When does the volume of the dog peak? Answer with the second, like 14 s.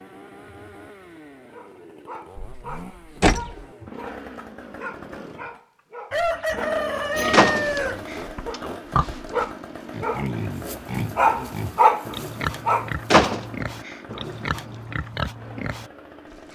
12 s.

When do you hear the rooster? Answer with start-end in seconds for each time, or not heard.
6.1-8.1.